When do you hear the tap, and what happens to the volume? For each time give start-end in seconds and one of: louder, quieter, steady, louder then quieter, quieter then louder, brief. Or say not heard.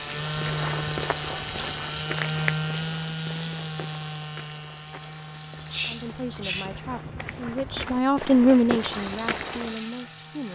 0.0-6.3 quieter
8.7-10.4 brief.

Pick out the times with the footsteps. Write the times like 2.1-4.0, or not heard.
0.3-9.8.